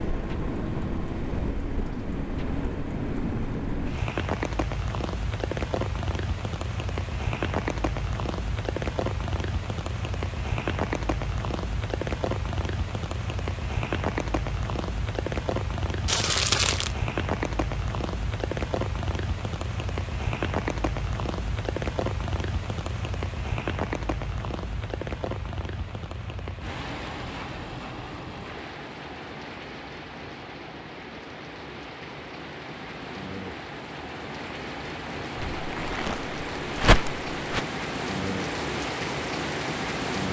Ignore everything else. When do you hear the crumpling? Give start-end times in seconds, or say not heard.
16.1-16.9, 35.4-37.6.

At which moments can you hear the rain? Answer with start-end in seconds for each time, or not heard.
0.0-40.2.